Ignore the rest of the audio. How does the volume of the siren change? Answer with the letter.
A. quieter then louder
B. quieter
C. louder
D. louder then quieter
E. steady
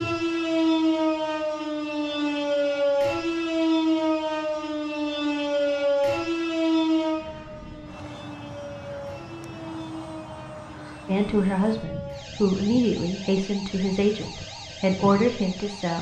B.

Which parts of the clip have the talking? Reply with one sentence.
The talking can be heard from 11.1 to 15.9 s.